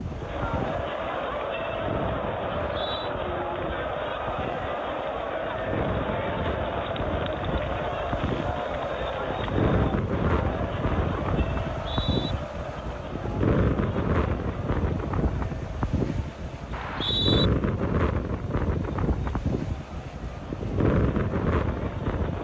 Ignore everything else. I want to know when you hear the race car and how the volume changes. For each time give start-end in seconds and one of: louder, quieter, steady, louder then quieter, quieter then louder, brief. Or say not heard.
not heard.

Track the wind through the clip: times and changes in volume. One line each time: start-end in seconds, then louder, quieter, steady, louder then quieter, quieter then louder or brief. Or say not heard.
0.0-22.3 louder.